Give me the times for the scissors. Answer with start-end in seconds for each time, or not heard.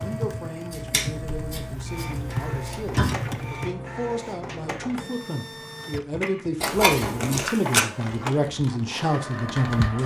0.7-3.1, 6.6-7.4.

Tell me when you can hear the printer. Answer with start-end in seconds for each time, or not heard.
0.0-10.0.